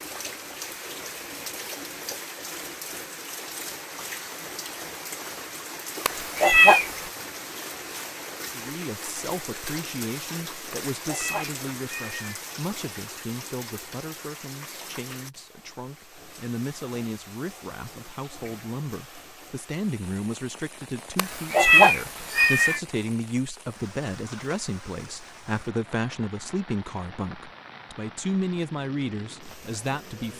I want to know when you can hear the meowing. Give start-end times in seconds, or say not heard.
6.0-7.0, 10.7-12.4, 21.1-22.8.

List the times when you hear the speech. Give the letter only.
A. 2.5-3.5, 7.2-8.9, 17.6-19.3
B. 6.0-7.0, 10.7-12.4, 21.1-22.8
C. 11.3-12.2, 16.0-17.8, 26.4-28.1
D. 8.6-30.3
D.